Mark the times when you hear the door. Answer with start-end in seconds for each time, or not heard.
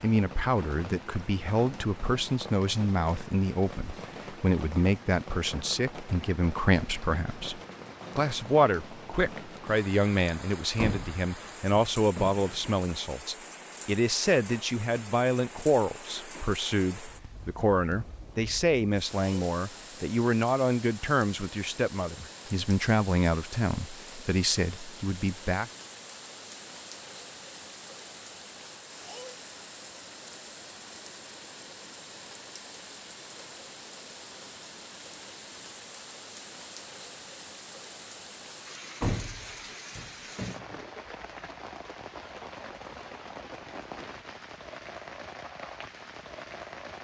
10.8-12.5, 39.0-40.8.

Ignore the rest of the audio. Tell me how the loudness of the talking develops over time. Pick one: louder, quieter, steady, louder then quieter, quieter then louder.
steady.